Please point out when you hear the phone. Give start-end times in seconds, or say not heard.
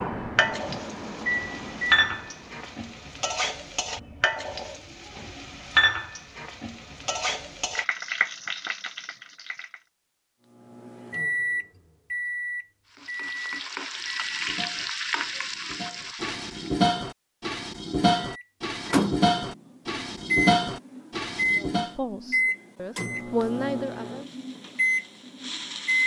not heard.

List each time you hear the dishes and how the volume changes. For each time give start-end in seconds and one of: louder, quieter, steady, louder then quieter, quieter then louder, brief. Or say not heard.
13.9-21.9 louder.